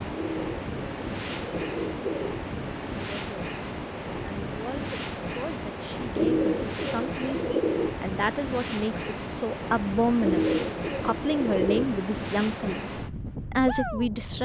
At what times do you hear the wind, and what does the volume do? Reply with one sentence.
You can hear the wind from 0.0 to 14.4 s, at a steady volume.